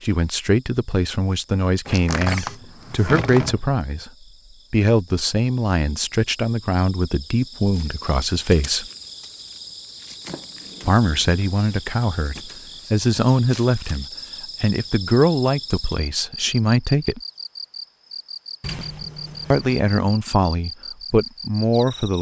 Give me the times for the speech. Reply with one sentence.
The speech can be heard from 0.0 to 4.1 s, from 4.7 to 8.8 s, from 10.8 to 17.2 s and from 19.5 to 22.1 s.